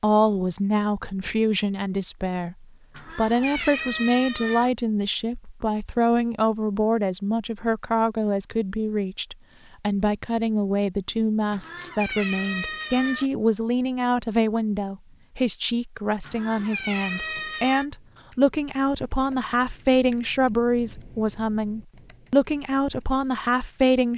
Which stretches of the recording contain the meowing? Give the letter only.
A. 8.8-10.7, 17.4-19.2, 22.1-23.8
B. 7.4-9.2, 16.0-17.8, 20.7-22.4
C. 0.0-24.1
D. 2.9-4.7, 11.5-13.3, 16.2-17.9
D.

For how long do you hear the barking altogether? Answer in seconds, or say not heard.
not heard.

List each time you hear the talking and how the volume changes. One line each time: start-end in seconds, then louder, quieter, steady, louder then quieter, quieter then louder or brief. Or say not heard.
0.0-24.1 steady.